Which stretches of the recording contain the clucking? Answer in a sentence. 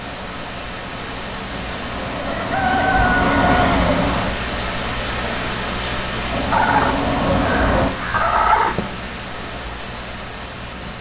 You can hear the clucking from 2.2 to 3.6 s and from 6.5 to 8.9 s.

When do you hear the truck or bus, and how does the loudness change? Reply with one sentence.
The truck or bus can be heard from 0.0 to 4.3 s, getting louder; and briefly from 6.3 to 7.9 s.